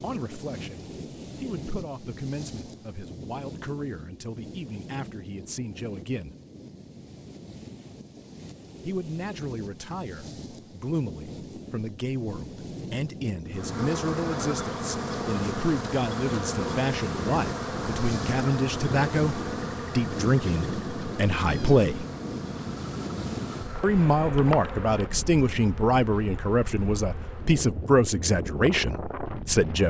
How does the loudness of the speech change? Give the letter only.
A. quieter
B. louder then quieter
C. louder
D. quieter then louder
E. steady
C.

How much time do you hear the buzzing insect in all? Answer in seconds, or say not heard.
14 s.